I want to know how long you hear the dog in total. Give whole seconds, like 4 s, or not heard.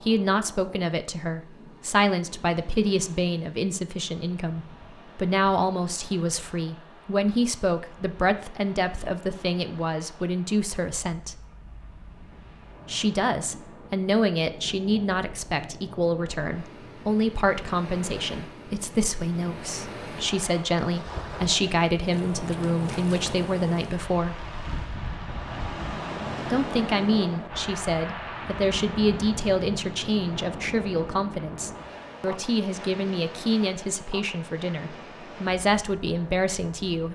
not heard.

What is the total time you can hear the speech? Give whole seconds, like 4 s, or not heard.
34 s.